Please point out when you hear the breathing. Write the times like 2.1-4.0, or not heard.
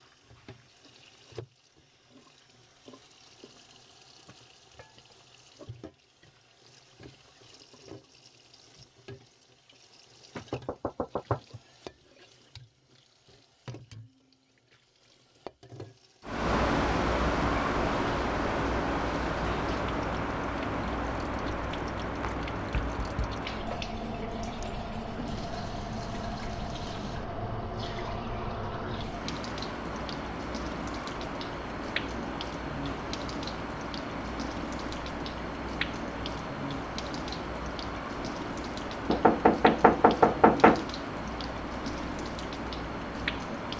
not heard.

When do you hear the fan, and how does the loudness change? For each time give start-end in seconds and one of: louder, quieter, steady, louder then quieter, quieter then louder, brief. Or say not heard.
16.2-43.7 quieter.